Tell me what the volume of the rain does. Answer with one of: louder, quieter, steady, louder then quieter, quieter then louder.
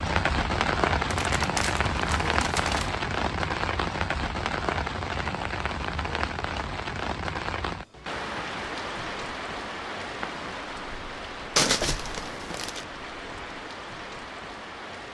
quieter.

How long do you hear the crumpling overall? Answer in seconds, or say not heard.
3 s.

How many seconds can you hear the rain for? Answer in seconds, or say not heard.
15 s.